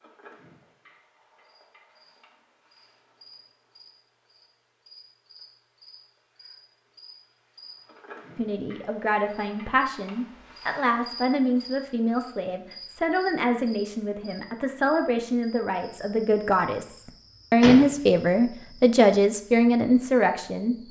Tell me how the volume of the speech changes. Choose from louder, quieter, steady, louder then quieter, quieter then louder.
louder.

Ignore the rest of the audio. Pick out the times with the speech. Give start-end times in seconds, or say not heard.
8.3-20.8.